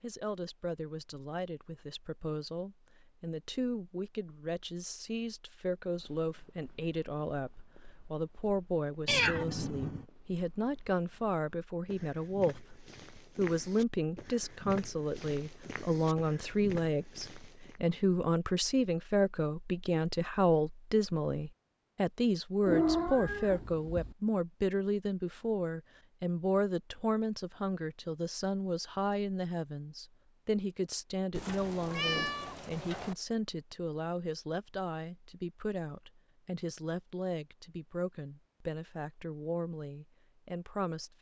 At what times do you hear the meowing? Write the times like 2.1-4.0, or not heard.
9.1-10.1, 22.6-24.1, 31.3-33.1.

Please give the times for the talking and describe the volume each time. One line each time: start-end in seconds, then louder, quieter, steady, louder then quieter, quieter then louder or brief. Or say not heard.
0.0-41.1 louder then quieter.